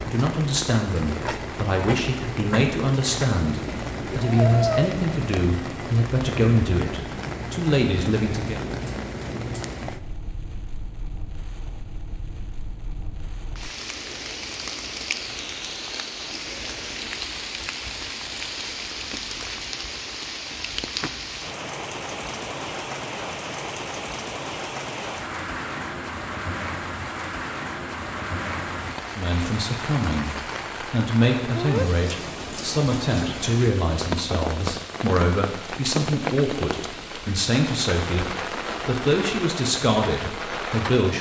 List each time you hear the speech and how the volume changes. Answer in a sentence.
You can hear the speech from 0.1 to 8.6 s, at a steady volume; and from 29.1 to 41.1 s, at a steady volume.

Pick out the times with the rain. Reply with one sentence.
You can hear the rain from 0.0 to 41.1 s.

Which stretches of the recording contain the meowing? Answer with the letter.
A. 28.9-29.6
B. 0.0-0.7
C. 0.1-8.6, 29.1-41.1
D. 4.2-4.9
D.